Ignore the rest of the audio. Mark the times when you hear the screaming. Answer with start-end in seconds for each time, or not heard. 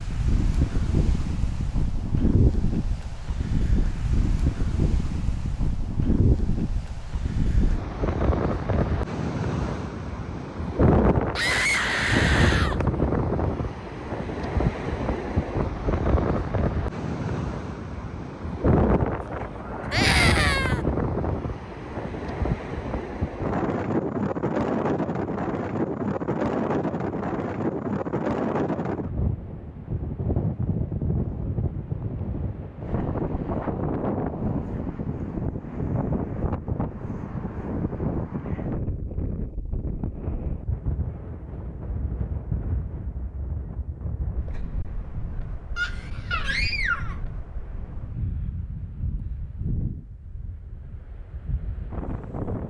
11.3-12.8, 19.9-20.8, 45.8-47.1.